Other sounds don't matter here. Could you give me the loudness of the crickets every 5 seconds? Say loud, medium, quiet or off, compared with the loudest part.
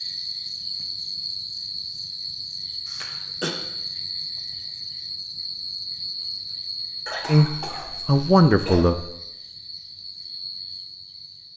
loud, loud, medium.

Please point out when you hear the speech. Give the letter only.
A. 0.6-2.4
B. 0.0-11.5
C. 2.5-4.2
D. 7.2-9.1
D.